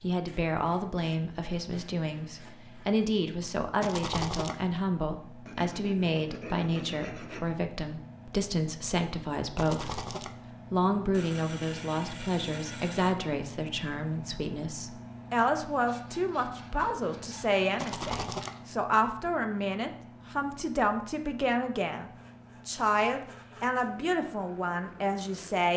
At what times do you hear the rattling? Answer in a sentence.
You can hear the rattling from 3.8 to 4.5 s, from 9.6 to 10.3 s and from 17.8 to 18.6 s.